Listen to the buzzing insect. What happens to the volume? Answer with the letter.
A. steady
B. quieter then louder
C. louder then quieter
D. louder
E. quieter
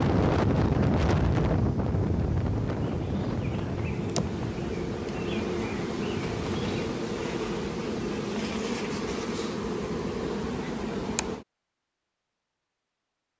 D.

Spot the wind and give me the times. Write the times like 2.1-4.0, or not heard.
0.0-7.0.